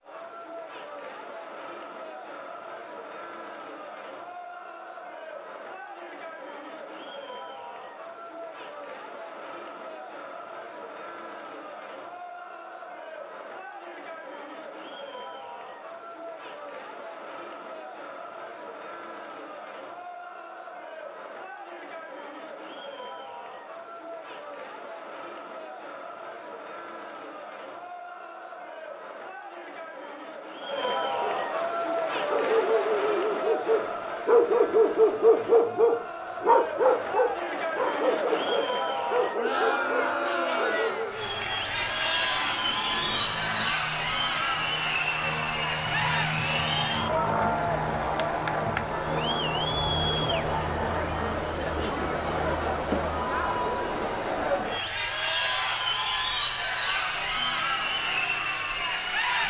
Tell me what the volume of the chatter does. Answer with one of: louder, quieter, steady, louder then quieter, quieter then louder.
louder.